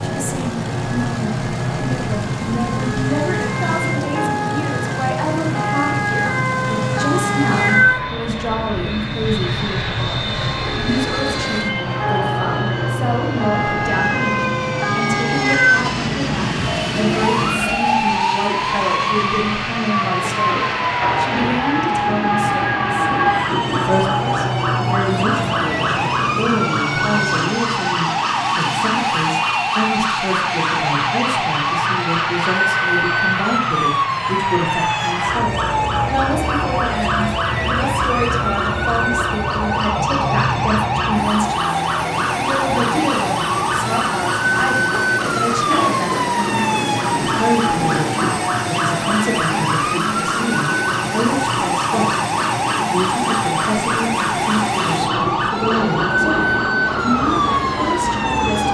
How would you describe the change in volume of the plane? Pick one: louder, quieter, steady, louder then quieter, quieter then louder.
steady.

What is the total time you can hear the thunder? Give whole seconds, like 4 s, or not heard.
7 s.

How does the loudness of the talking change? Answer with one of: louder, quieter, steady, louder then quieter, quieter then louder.
steady.